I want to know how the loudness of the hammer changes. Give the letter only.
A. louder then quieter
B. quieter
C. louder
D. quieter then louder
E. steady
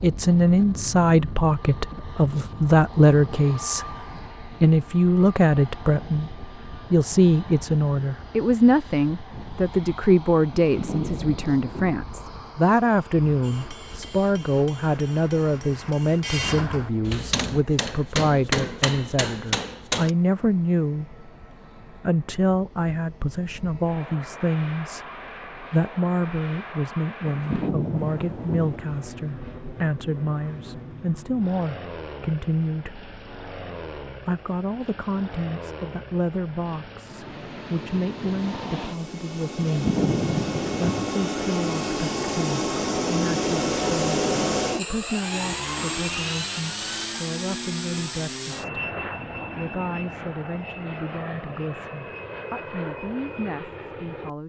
C.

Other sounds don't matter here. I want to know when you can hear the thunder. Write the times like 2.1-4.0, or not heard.
10.6-12.1, 27.2-28.8, 39.6-41.1.